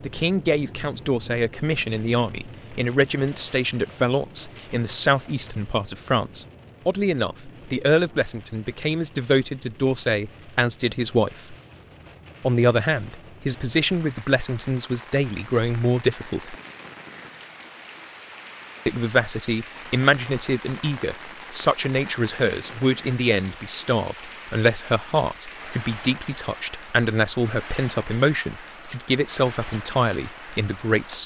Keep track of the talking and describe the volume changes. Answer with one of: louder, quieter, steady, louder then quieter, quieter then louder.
steady.